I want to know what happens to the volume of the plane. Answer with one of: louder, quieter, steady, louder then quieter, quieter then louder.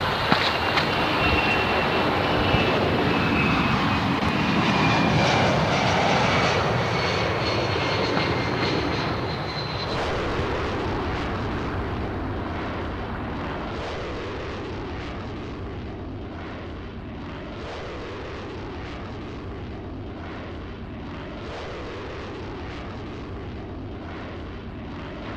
quieter.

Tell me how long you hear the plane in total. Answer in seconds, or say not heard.
25 s.